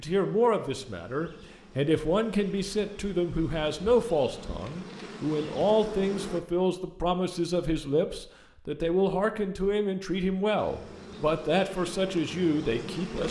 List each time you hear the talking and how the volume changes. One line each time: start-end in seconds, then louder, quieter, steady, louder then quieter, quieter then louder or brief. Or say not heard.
0.0-13.2 steady.